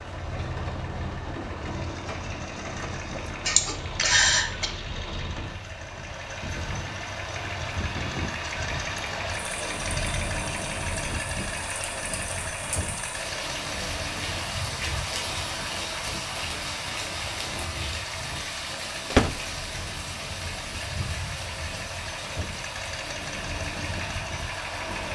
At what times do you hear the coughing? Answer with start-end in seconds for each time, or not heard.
3.5-4.7.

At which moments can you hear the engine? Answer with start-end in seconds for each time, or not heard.
0.0-25.1.